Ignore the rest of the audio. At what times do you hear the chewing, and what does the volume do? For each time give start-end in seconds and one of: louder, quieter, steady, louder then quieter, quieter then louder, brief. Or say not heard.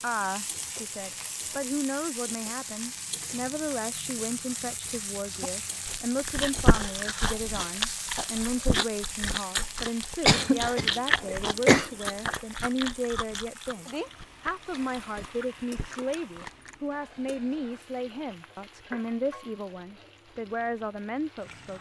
5.4-16.8 quieter.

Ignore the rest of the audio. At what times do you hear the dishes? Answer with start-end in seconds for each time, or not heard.
not heard.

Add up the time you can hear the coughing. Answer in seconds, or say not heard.
2 s.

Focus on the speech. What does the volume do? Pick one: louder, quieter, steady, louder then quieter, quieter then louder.
steady.